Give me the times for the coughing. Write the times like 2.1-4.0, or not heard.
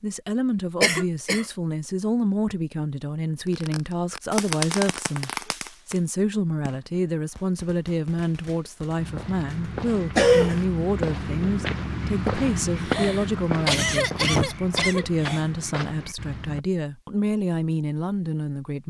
0.8-1.4, 10.2-10.6, 12.8-15.4.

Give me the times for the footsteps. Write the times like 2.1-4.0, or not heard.
8.9-16.6.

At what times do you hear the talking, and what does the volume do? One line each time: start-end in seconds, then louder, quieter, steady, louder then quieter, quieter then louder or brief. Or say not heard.
0.0-18.8 steady.